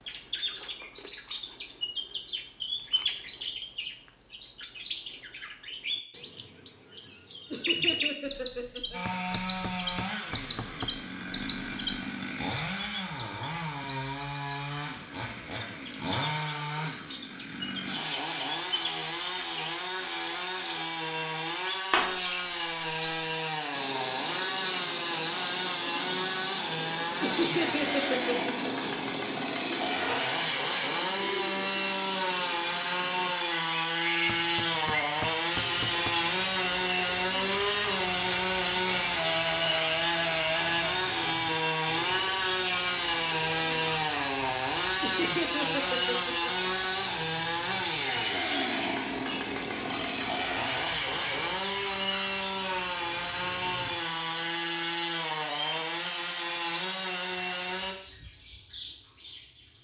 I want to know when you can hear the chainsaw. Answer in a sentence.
The chainsaw can be heard from 8.9 to 58.0 s.